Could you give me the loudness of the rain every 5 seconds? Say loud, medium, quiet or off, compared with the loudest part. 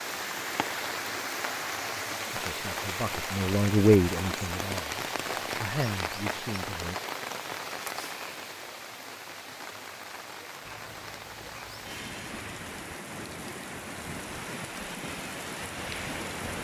loud, loud, medium, loud.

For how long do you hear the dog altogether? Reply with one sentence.
You can hear the dog for 2 seconds altogether.